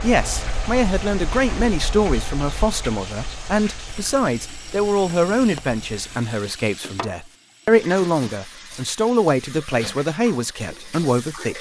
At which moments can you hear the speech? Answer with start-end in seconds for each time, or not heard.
0.0-11.5.